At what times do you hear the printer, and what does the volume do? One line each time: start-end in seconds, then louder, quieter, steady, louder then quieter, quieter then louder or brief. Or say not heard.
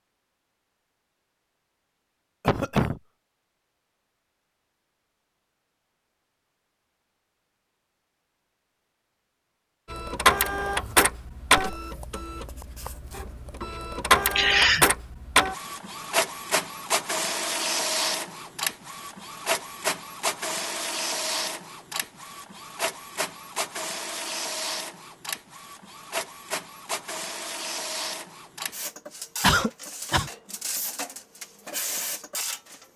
9.9-32.9 quieter.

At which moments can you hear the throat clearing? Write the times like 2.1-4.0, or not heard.
2.5-3.0, 14.3-14.8, 29.4-30.3.